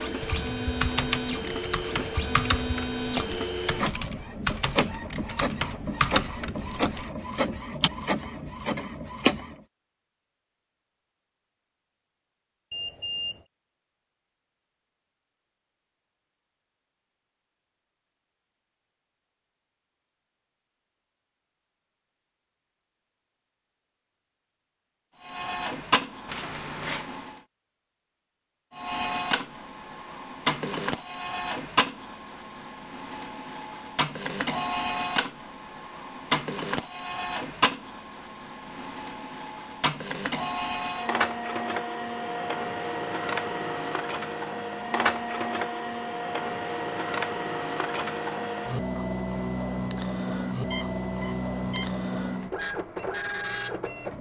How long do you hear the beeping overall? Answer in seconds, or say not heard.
3 s.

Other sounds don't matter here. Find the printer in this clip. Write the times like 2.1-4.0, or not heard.
0.0-9.6, 25.2-27.4, 28.7-54.1.